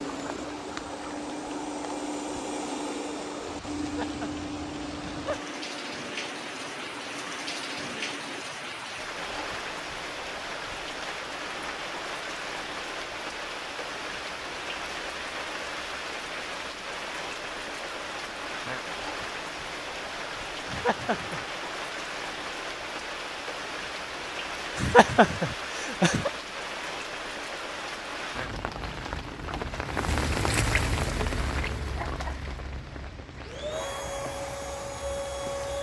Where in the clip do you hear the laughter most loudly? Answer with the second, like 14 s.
25 s.